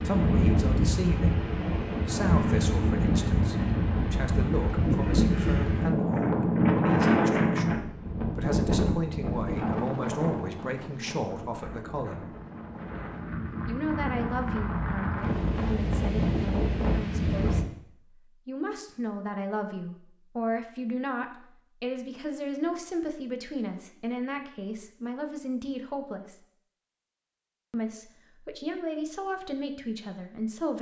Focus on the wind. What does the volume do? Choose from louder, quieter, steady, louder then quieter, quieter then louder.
quieter then louder.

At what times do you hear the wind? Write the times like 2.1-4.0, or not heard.
0.0-17.6.